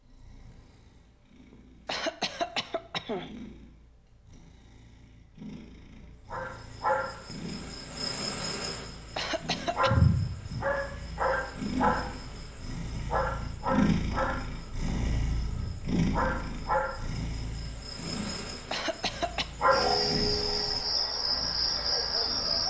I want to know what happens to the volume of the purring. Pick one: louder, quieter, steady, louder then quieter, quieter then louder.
louder then quieter.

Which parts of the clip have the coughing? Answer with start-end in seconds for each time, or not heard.
1.9-3.3, 9.2-9.9, 18.7-19.5.